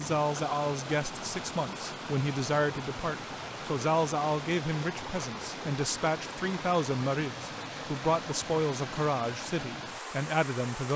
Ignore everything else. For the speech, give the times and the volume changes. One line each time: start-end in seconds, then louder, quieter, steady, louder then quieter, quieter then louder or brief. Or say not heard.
0.0-10.9 steady.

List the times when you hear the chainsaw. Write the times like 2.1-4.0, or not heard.
not heard.